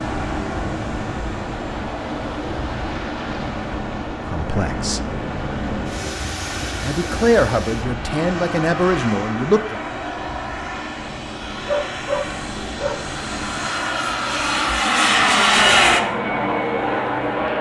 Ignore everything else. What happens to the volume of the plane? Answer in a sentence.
The volume of the plane goes up.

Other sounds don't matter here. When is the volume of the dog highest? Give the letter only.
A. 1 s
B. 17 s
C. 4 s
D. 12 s
D.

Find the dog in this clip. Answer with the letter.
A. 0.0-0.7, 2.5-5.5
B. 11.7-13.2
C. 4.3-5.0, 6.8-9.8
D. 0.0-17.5
B.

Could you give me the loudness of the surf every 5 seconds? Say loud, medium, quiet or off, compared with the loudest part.
loud, loud, medium, medium.